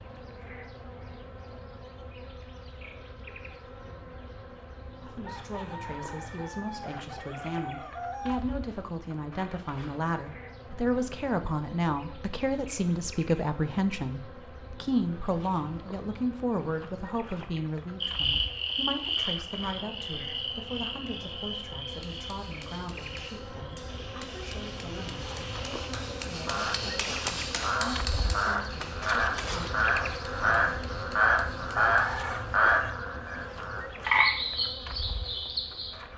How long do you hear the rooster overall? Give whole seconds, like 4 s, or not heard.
4 s.